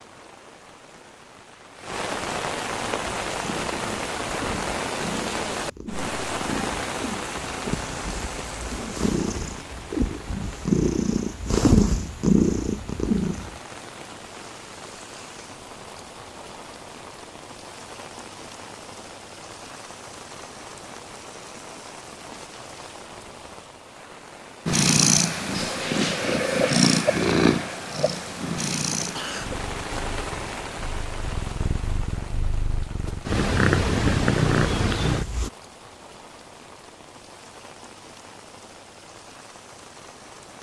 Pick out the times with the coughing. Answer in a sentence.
You can hear the coughing from 29.1 to 29.8 s.